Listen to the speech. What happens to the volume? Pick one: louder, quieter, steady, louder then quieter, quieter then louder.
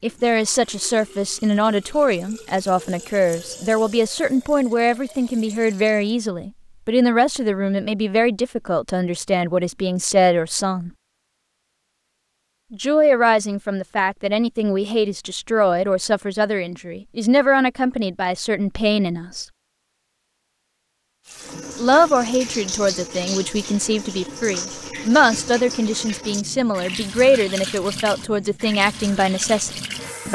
steady.